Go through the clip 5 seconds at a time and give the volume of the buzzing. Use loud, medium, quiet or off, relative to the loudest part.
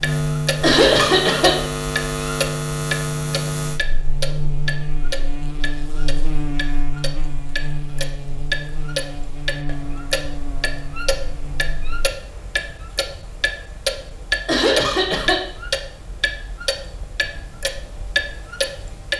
loud, medium, quiet, off.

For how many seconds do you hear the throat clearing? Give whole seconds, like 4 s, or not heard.
2 s.